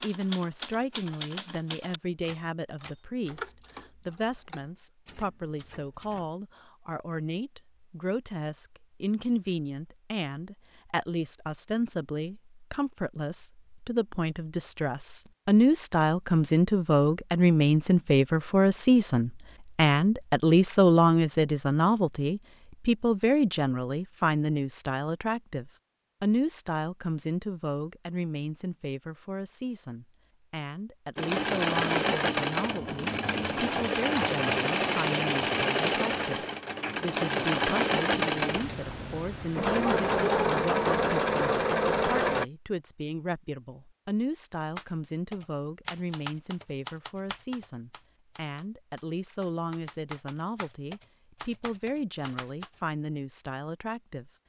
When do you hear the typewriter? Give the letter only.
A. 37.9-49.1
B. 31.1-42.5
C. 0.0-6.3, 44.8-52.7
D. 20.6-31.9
C.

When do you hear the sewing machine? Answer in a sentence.
You can hear the sewing machine from 31.1 to 42.5 s.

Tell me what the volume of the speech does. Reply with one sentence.
The loudness of the speech goes up, then down.